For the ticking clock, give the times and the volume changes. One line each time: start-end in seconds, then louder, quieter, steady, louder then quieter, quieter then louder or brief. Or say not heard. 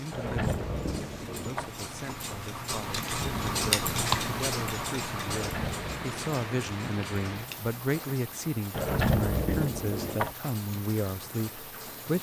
0.0-12.1 louder then quieter.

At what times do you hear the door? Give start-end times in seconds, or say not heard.
0.1-1.7, 5.2-6.1, 8.7-10.3.